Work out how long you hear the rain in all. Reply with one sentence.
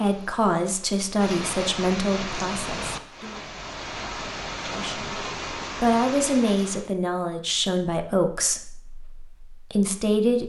The rain can be heard for 7 seconds in total.